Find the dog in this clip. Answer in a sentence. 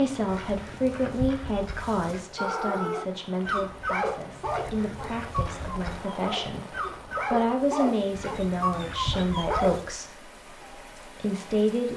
The dog can be heard from 2.4 to 9.8 s.